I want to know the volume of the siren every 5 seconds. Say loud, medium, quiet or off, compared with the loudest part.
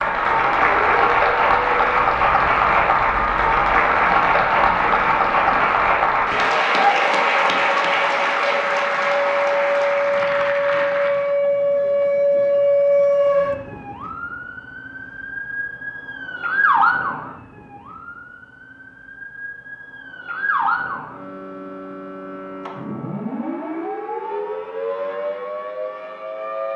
medium, medium, loud, medium, medium, medium.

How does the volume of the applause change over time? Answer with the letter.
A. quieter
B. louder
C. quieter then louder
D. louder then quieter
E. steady
A.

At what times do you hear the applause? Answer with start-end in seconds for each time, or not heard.
0.0-11.3.